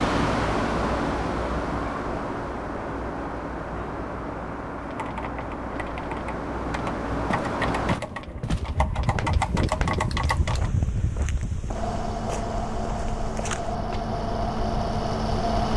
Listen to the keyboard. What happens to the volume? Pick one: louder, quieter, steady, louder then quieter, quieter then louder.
louder.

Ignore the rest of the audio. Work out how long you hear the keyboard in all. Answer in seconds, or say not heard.
6 s.